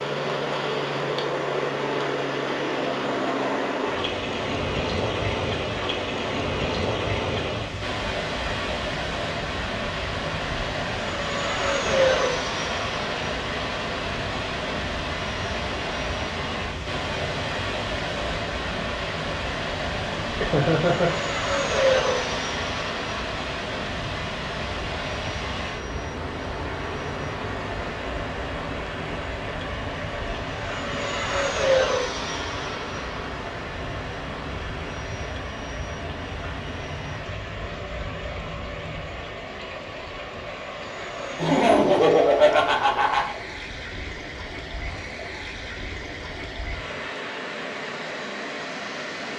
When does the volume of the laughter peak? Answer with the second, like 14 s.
42 s.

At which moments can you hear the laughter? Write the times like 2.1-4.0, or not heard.
20.2-21.2, 41.4-43.3.